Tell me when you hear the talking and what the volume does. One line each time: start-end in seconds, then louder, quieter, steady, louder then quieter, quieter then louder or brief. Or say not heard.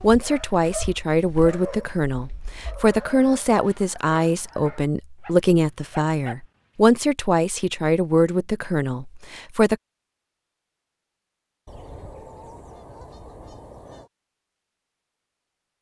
0.0-9.8 steady.